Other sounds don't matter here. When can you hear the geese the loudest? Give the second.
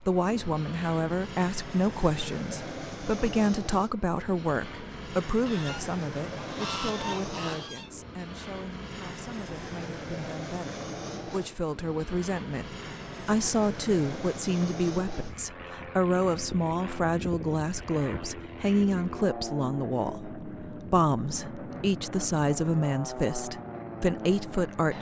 7 s.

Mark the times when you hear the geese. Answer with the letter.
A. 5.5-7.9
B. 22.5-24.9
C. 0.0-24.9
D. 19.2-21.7
A.